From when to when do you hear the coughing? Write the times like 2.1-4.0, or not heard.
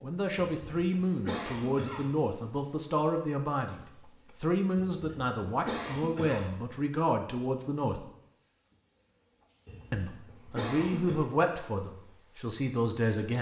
0.6-2.2, 4.8-6.6, 9.7-11.2.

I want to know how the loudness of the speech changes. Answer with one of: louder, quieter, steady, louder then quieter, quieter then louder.
steady.